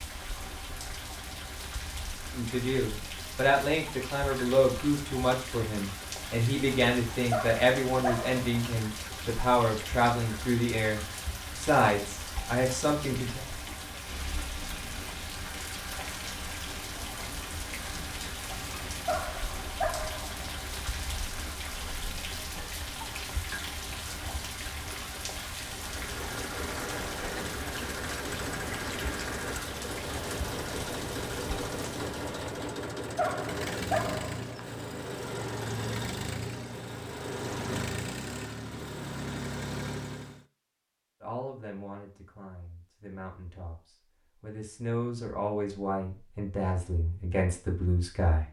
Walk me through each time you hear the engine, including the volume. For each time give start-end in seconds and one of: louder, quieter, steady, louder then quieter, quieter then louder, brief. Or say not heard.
25.8-40.5 steady.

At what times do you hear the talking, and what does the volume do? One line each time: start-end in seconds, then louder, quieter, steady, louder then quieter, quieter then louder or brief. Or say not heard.
2.4-13.4 steady
41.2-48.4 louder.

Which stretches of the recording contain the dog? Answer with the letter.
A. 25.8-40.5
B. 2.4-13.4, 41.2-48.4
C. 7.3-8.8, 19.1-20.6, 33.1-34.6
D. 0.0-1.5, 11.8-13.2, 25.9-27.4
C.